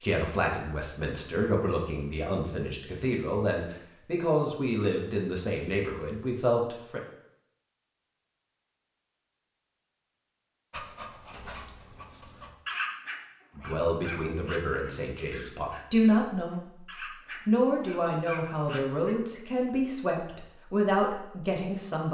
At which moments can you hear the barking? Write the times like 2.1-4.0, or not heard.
10.7-19.1.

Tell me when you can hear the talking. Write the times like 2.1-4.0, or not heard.
0.0-7.0, 13.6-22.1.